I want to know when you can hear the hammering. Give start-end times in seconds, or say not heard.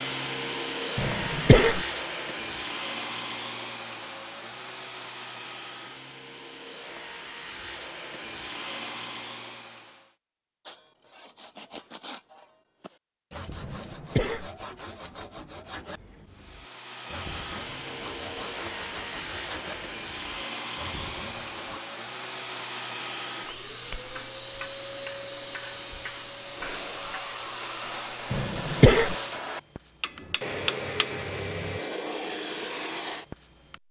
24.1-31.8.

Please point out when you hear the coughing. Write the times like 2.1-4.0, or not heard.
0.9-1.8, 13.6-14.5, 28.3-29.1.